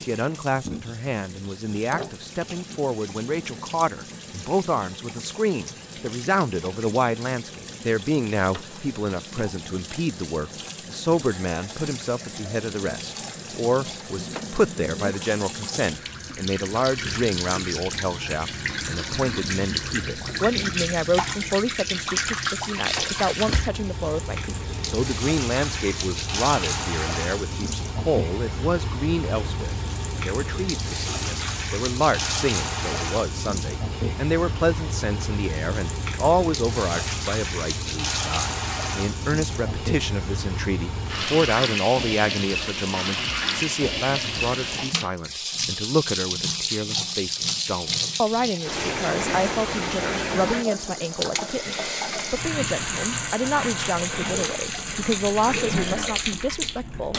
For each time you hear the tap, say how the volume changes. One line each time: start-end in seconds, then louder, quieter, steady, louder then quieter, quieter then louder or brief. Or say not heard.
0.0-57.1 louder.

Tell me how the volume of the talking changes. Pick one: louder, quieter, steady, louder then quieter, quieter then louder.
steady.